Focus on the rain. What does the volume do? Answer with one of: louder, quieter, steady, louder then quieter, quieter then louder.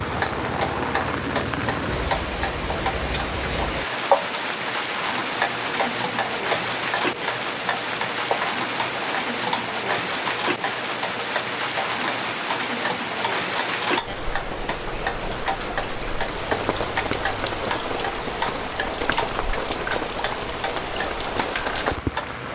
steady.